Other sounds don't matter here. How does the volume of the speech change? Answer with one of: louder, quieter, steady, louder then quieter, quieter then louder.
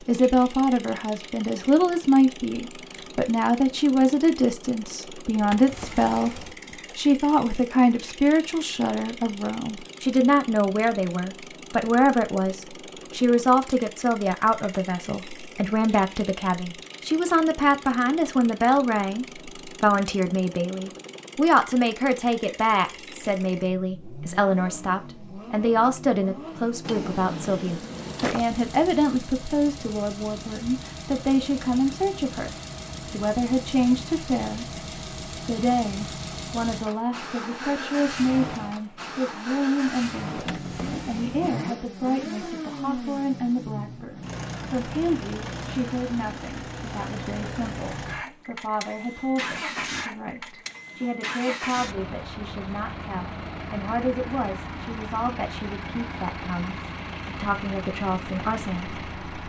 quieter.